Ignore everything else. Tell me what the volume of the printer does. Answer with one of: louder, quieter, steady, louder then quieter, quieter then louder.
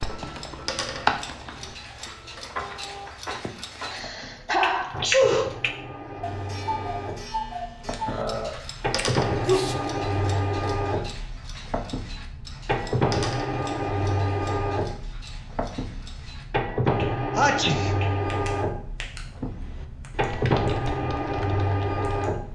louder.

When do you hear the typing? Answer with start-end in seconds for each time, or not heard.
0.0-1.8, 19.4-22.5.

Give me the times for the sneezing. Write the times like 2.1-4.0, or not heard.
3.4-5.5, 8.1-9.8, 17.4-17.9.